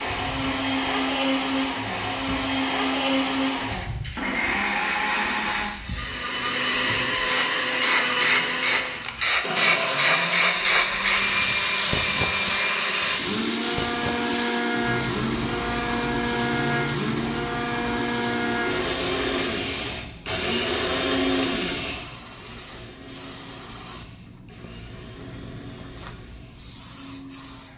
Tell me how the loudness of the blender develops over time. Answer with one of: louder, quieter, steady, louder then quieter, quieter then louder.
quieter.